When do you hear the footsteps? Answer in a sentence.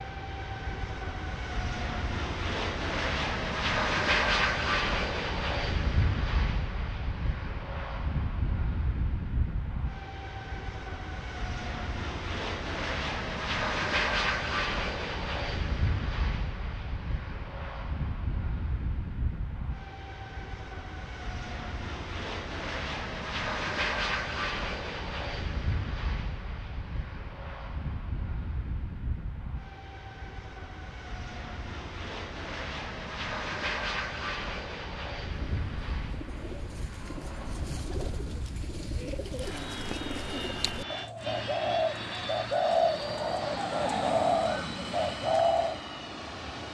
You can't hear the footsteps here.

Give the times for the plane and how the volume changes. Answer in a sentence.
You can hear the plane from 0.0 to 46.6 s, getting quieter.